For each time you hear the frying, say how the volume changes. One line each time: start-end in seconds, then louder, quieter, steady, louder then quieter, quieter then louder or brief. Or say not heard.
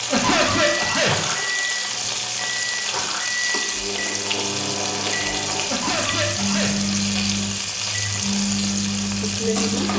0.0-9.9 steady.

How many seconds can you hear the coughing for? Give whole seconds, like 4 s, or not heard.
2 s.